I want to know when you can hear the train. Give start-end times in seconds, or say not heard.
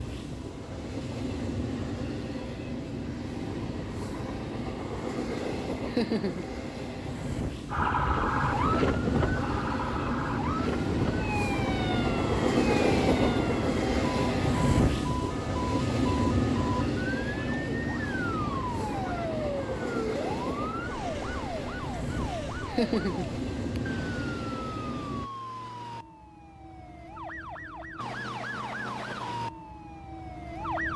0.0-25.3.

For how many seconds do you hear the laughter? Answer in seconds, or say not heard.
2 s.